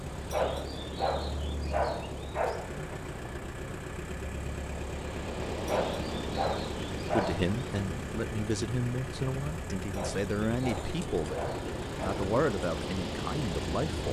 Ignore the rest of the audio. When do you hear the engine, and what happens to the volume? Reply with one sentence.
The engine can be heard from 0.0 to 14.0 s, at a steady volume.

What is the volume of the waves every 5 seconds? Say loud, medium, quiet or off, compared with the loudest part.
medium, loud, loud.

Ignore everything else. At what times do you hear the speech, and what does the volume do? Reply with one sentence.
You can hear the speech from 7.1 to 14.0 s, at a steady volume.